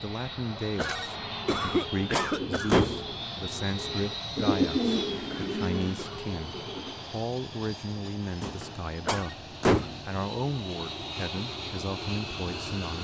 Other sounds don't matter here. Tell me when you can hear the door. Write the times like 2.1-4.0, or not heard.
1.4-3.1, 8.4-10.0.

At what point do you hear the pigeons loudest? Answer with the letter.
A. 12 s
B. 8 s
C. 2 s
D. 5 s
D.